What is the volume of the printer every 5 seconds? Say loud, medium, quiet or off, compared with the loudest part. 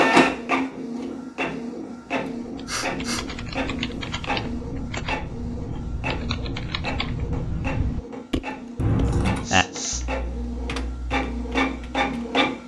loud, medium, loud.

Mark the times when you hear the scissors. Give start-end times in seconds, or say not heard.
8.8-9.4.